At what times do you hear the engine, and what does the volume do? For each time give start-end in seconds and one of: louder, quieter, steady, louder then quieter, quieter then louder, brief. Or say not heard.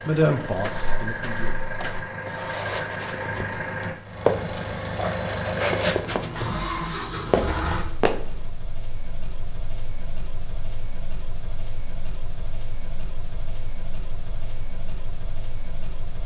0.0-16.2 quieter.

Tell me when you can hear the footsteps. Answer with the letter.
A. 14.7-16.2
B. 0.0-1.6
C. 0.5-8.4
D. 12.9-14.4
C.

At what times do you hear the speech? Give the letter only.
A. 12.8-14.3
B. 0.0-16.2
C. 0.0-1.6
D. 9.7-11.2
C.